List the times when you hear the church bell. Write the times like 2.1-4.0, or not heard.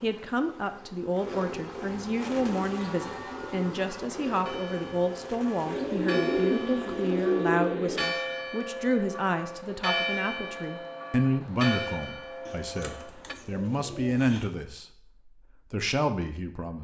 2.2-13.3.